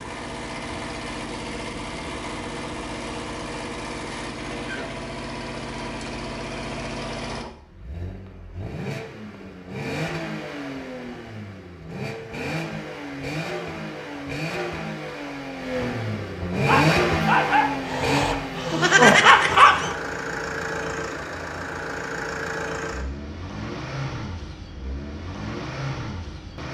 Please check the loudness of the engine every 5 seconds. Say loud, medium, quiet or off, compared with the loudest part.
medium, medium, medium, loud, medium, medium.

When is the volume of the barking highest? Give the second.
19 s.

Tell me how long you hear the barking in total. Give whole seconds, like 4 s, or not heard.
3 s.